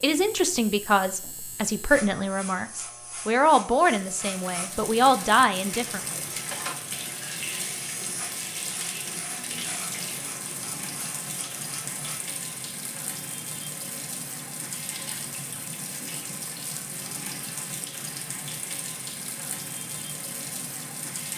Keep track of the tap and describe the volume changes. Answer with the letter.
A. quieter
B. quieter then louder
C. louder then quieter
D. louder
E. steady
E.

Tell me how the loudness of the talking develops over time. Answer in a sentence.
The loudness of the talking stays about the same.